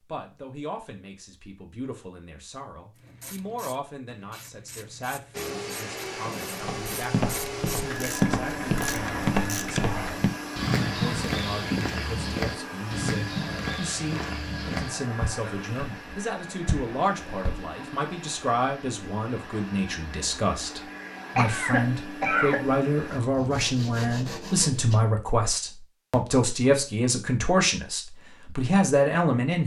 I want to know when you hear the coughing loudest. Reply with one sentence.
The loudest moment of the coughing is at 22 seconds.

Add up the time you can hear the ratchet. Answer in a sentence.
The ratchet can be heard for 7 seconds in total.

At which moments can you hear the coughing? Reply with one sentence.
You can hear the coughing from 20.9 to 22.7 s.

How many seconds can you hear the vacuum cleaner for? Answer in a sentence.
The vacuum cleaner can be heard for 18 seconds in total.